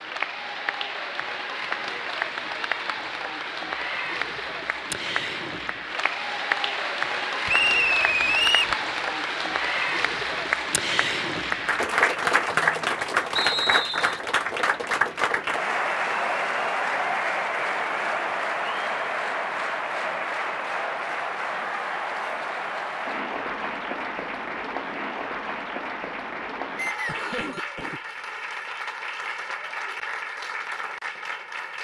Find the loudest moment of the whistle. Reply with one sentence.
The loudest moment of the whistle is at 8 seconds.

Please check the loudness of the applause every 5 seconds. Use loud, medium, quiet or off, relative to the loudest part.
medium, loud, loud, loud, medium, medium, medium.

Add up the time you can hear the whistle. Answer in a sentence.
The whistle can be heard for 3 seconds in total.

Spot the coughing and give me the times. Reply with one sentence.
You can hear the coughing from 27.1 to 28.4 s.